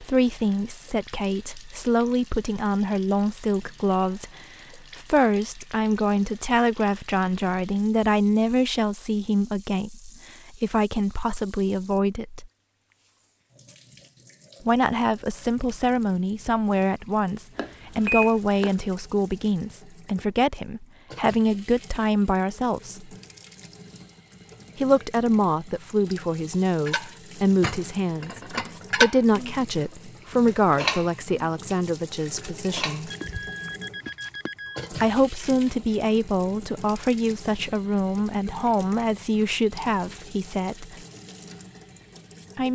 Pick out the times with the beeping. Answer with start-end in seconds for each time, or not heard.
17.6-18.8, 33.1-34.9.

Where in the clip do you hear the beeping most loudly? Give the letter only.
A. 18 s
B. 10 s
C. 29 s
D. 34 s
A.